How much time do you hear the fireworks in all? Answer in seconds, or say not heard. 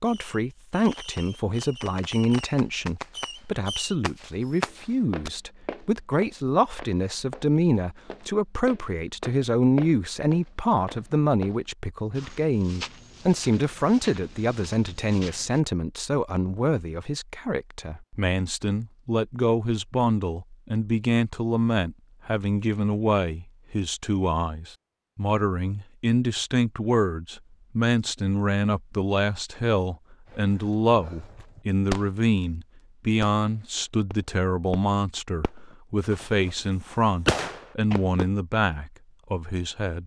12 s.